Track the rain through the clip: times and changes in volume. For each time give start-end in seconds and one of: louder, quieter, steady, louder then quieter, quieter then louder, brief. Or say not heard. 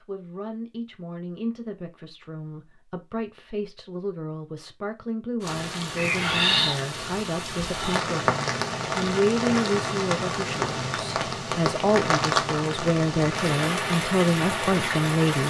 5.4-15.4 steady.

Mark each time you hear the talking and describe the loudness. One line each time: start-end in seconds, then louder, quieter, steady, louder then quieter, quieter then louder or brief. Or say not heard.
0.0-15.4 louder.